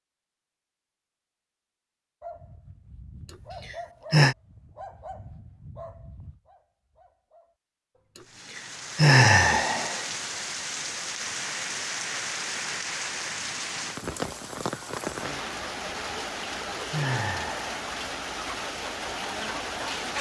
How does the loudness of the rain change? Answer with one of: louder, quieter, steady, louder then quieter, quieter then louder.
steady.